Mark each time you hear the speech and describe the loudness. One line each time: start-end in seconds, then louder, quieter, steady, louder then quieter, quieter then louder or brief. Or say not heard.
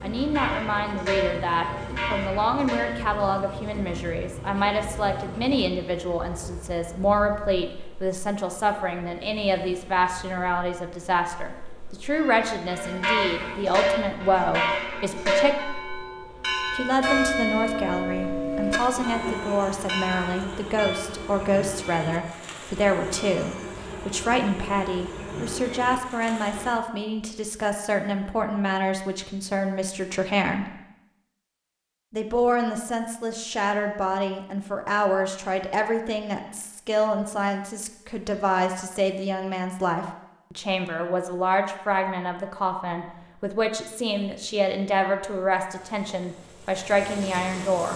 0.0-15.6 steady
16.7-30.7 steady
32.1-47.9 steady.